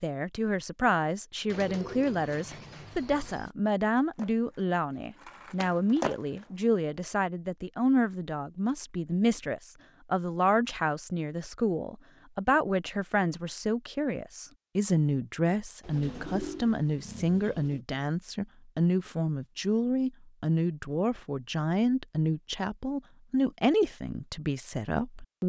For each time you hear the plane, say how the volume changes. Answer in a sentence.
The plane can't be heard in this clip.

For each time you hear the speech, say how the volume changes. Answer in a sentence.
The speech can be heard from 0.0 to 25.4 s, at a steady volume.